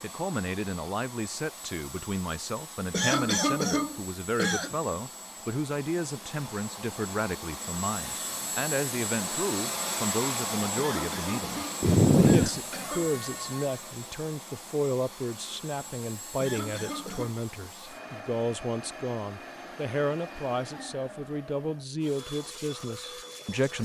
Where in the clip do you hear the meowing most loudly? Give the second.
12 s.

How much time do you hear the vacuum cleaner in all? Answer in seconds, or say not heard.
24 s.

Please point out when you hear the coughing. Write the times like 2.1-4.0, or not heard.
2.9-4.8, 10.8-13.2, 16.4-17.4.